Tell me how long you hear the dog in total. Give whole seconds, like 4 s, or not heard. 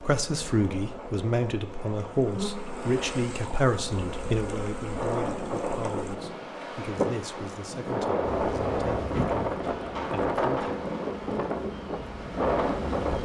not heard.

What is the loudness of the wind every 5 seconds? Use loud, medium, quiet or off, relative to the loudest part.
quiet, loud, loud.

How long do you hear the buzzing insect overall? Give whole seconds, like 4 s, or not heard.
11 s.